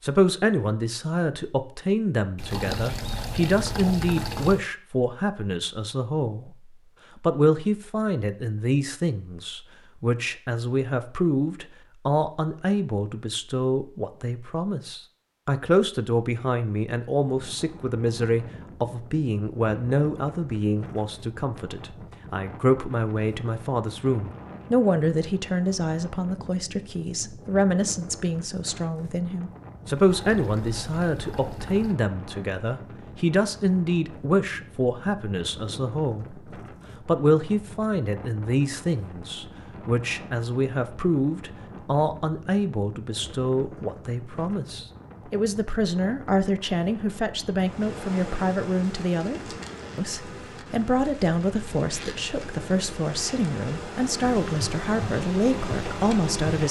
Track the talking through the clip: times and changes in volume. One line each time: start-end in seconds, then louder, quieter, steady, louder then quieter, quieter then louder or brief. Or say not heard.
0.0-56.6 steady.